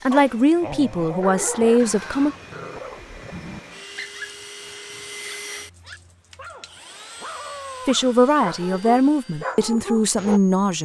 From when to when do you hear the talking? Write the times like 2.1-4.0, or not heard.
0.0-2.4, 7.8-10.8.